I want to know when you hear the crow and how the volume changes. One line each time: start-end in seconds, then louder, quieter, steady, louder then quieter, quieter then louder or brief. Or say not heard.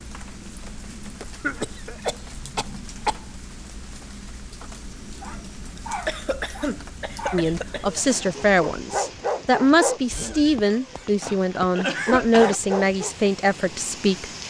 not heard.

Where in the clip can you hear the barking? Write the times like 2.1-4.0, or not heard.
5.2-13.3.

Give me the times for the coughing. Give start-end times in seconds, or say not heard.
1.4-3.3, 5.8-7.8, 11.2-12.6.